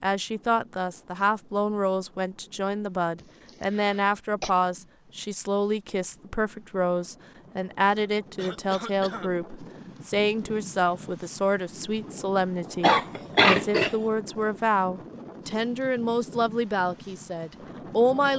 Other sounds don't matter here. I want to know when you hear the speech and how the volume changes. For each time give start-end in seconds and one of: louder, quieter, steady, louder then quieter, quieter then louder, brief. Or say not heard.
0.0-18.3 steady.